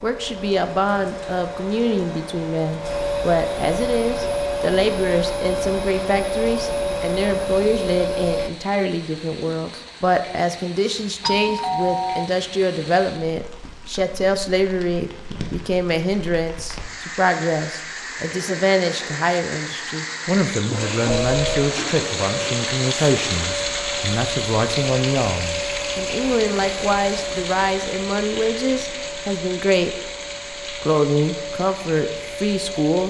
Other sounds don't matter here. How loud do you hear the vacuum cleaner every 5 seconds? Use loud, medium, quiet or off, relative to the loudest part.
loud, loud, off, off, medium, medium, medium.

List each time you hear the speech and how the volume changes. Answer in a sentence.
The speech can be heard from 0.0 to 30.1 s, at a steady volume; and briefly from 30.7 to 33.0 s.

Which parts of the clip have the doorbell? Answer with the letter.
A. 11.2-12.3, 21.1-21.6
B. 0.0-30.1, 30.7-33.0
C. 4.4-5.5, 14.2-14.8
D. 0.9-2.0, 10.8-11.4
A.